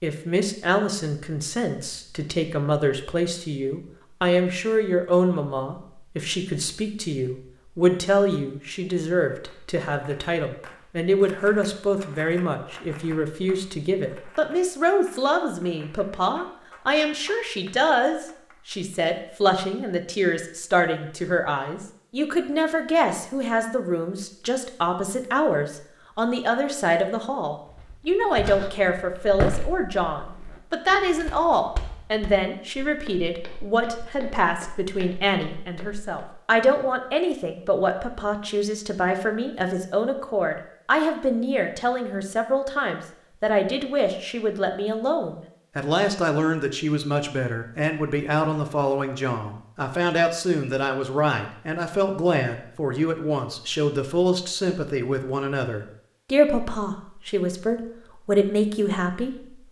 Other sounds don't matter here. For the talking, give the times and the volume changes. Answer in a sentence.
You can hear the talking from 0.0 to 59.6 s, at a steady volume.